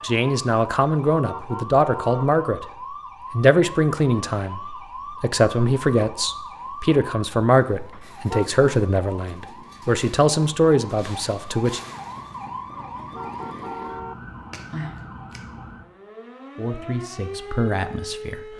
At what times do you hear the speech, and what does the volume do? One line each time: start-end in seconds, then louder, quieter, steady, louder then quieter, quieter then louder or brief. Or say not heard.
0.0-2.6 brief
3.3-11.8 steady
16.6-18.5 brief.